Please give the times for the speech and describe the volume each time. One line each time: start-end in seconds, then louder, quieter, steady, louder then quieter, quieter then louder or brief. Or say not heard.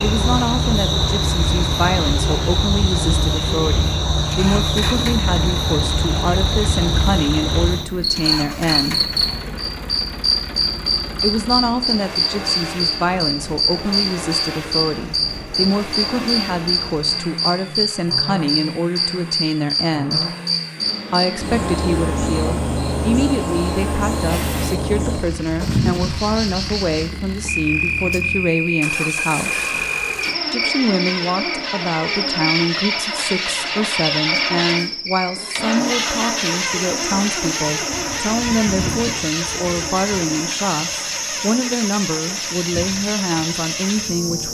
0.0-9.2 steady
11.2-20.2 steady
21.1-29.7 steady
30.5-44.4 steady.